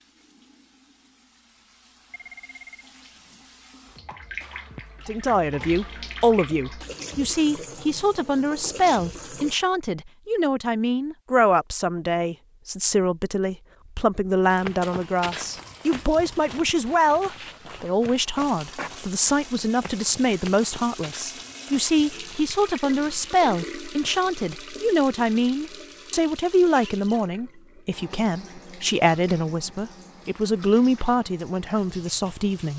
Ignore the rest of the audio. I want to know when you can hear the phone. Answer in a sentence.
You can hear the phone from 2.1 to 2.9 s.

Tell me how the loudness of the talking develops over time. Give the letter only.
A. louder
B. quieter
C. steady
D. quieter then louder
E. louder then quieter
C.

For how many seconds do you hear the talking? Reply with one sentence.
You can hear the talking for 28 seconds altogether.